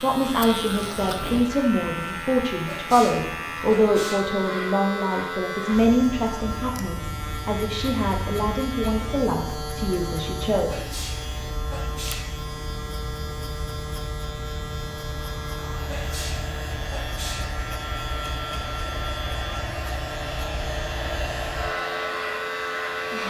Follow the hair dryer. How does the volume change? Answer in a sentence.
The volume of the hair dryer goes up.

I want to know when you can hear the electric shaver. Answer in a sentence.
You can hear the electric shaver from 0.0 to 23.2 s.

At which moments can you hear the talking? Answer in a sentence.
The talking can be heard from 0.0 to 10.8 s.